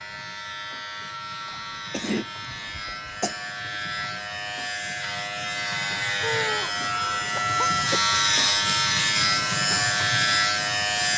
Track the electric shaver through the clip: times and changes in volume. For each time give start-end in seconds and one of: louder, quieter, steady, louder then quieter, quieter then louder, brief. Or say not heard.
0.0-11.1 louder.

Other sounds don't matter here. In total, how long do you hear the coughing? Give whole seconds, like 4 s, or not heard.
4 s.